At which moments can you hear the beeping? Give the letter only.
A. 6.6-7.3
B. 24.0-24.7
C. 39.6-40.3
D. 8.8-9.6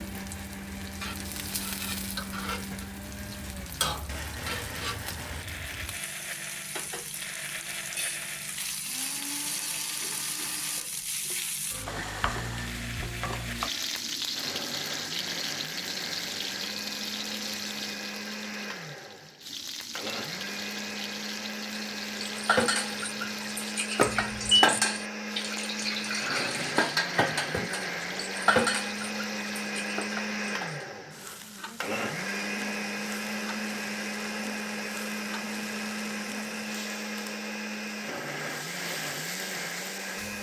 B.